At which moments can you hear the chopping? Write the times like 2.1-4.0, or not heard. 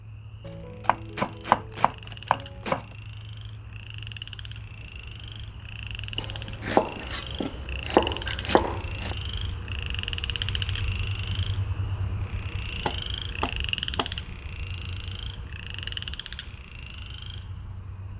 0.5-2.8, 6.2-9.2, 12.8-14.1.